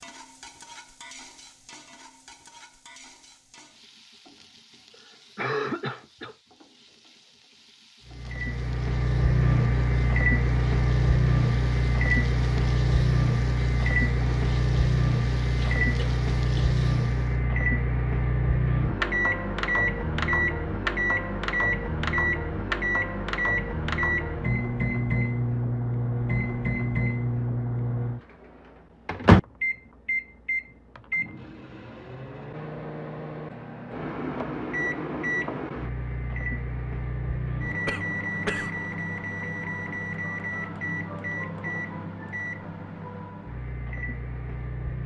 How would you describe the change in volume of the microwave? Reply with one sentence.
The loudness of the microwave goes down.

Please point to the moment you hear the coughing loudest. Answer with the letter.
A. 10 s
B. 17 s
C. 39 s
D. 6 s
D.